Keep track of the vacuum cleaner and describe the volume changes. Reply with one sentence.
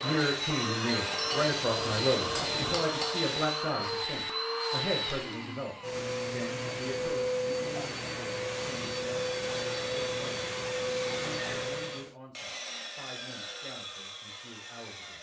The volume of the vacuum cleaner stays about the same.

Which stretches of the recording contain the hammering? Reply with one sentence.
You can hear the hammering from 1.1 to 3.2 s.